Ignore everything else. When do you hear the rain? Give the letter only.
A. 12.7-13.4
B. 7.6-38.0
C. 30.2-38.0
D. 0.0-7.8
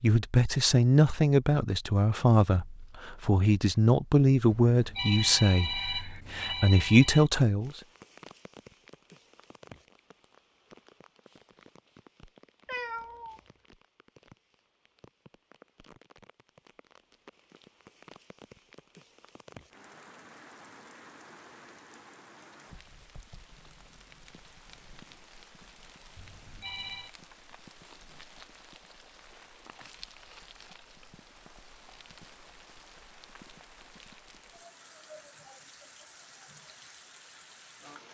B.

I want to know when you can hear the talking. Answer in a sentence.
The talking can be heard from 0.0 to 7.8 s.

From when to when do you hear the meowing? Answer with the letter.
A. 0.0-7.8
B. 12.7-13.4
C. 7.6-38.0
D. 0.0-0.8
B.